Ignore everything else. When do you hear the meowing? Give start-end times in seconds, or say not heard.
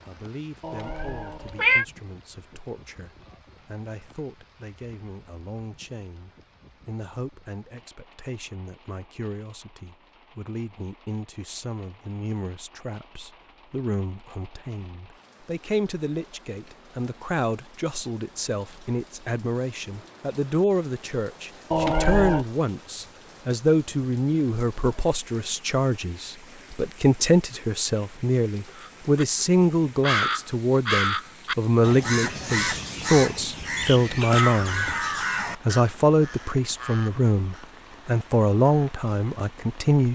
0.6-1.9, 21.7-22.4.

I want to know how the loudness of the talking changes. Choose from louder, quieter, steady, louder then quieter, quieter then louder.
louder.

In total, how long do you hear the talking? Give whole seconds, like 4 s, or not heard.
39 s.